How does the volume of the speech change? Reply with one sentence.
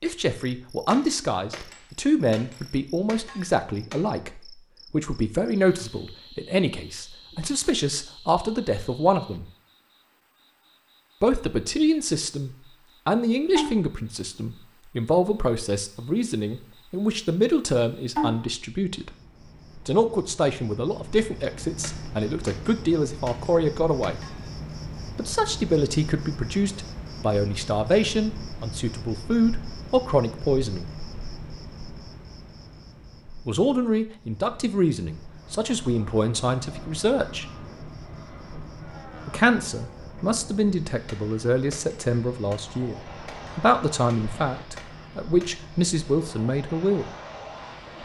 The volume of the speech stays about the same.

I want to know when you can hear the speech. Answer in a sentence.
The speech can be heard from 0.0 to 9.4 s, from 11.2 to 19.1 s, from 19.9 to 24.4 s, from 25.1 to 30.9 s, from 33.5 to 37.5 s and from 39.2 to 47.1 s.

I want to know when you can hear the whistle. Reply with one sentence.
You can't hear the whistle here.